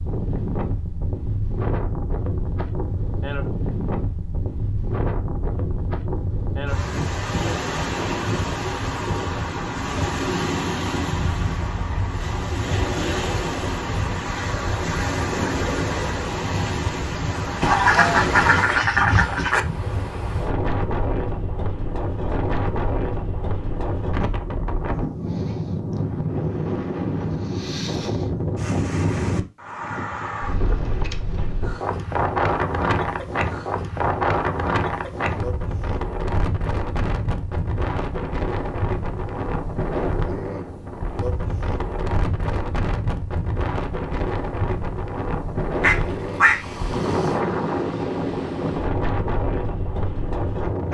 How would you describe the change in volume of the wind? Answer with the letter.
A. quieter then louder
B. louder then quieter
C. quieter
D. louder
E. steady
E.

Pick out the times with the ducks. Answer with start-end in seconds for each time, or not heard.
17.6-19.6, 45.8-47.4.